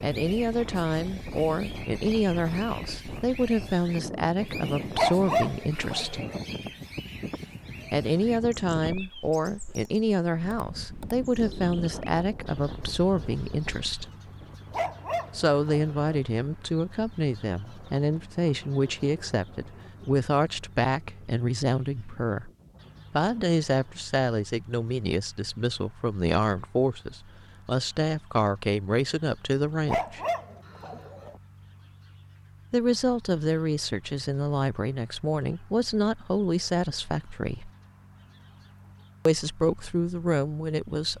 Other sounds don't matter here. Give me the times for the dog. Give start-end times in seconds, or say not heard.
5.0-6.5, 14.7-16.1, 29.9-31.4.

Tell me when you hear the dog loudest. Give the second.
5 s.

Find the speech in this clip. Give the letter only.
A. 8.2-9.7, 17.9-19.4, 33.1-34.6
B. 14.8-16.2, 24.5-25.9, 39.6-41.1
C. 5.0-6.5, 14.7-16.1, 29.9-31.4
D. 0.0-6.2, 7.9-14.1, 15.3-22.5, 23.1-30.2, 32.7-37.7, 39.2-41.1
D.